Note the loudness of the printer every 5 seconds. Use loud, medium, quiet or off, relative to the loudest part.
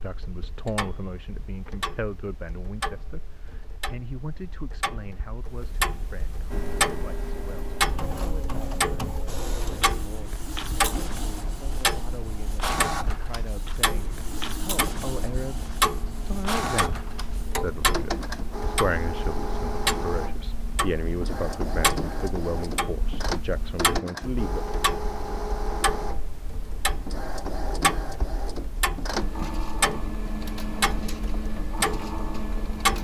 off, loud, loud, loud, loud, loud, loud.